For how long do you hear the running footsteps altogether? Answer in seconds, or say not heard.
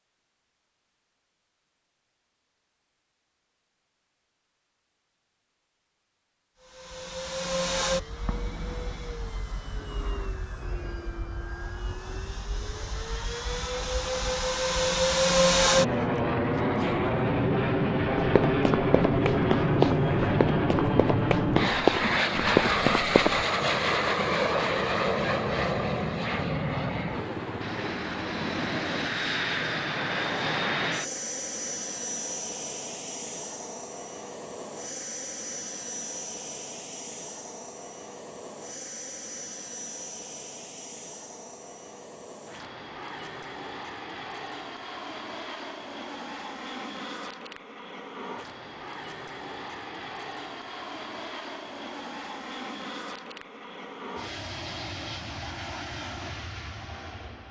5 s.